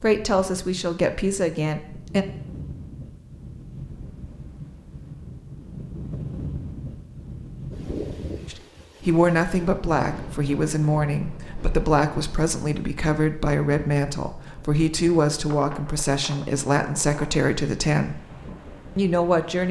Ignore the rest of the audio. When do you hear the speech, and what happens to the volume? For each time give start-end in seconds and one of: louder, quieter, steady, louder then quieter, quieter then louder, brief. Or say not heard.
0.0-2.2 brief
8.5-18.2 steady
18.9-19.6 brief.